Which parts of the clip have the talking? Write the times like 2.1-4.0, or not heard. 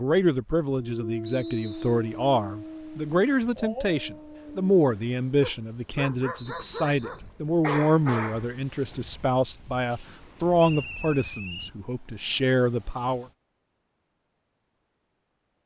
0.0-13.2.